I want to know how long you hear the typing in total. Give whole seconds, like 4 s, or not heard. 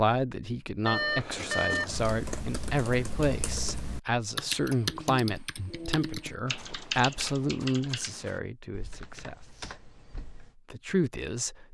9 s.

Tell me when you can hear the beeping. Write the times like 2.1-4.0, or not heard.
0.8-2.0.